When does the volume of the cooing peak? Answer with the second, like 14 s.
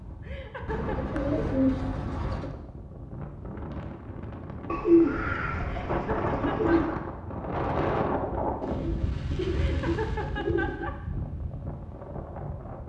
5 s.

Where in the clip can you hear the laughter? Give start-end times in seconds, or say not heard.
0.2-1.1, 5.6-6.8, 9.5-10.9.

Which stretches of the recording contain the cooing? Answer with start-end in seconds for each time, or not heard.
0.7-2.5, 4.7-7.0, 8.6-10.9.